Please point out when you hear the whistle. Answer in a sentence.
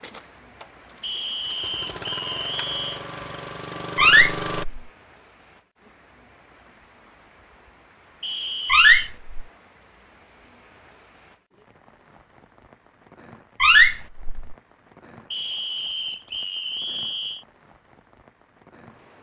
The whistle can be heard from 1.0 to 3.0 s, from 8.2 to 9.1 s and from 15.3 to 17.4 s.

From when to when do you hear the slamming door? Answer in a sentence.
The slamming door can be heard from 4.0 to 4.8 s, from 8.7 to 9.3 s and from 13.6 to 14.6 s.